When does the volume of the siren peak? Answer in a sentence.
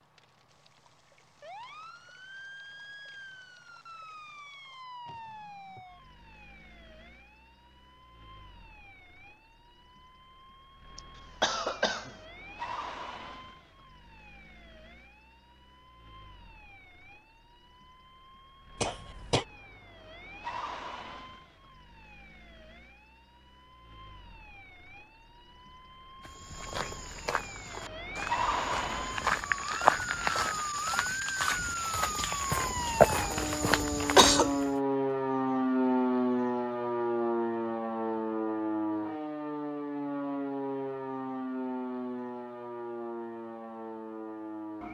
The volume of the siren peaks at 36 seconds.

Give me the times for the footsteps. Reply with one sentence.
You can hear the footsteps from 26.2 to 34.7 s.